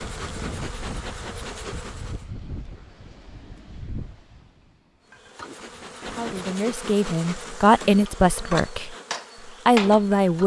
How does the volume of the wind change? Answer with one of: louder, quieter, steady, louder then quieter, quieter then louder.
quieter.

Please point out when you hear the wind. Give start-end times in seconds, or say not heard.
0.0-6.6.